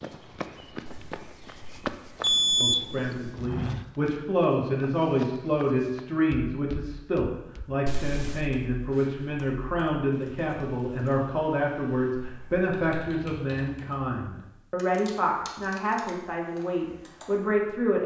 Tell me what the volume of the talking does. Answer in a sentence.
The loudness of the talking stays about the same.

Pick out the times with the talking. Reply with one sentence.
You can hear the talking from 2.6 to 18.0 s.